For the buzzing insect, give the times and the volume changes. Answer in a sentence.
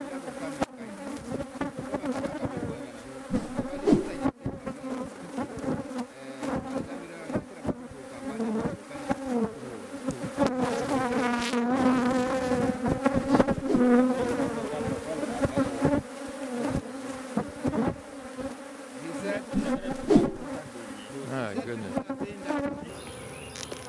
You can hear the buzzing insect from 0.0 to 23.8 s, getting louder then quieter.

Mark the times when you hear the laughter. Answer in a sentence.
You can't hear the laughter here.